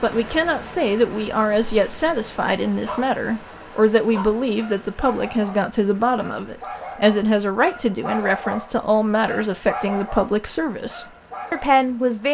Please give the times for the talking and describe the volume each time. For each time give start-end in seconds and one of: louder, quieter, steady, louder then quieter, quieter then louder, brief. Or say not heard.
0.0-12.2 steady.